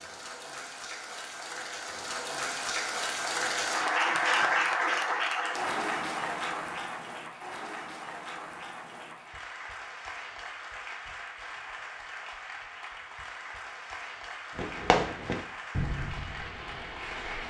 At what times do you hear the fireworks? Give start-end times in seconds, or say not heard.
14.5-17.4.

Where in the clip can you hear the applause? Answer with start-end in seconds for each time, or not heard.
0.0-17.4.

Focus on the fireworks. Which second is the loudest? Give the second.
15 s.